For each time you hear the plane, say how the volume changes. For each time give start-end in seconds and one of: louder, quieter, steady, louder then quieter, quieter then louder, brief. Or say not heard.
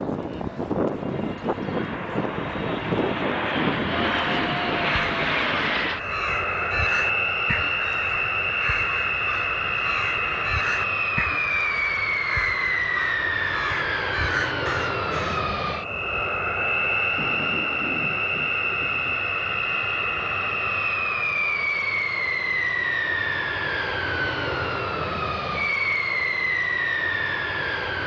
0.0-28.0 steady.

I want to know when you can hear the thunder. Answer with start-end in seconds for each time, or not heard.
3.6-5.7, 17.1-19.2.